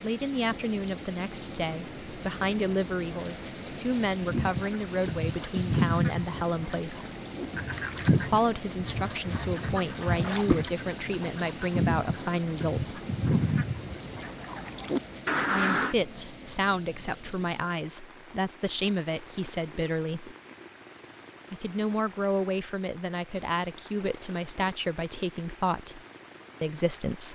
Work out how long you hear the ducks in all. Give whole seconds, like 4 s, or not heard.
12 s.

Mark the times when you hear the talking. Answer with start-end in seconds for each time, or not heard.
0.0-7.1, 8.2-13.0, 15.5-20.4, 21.5-26.0, 26.6-27.3.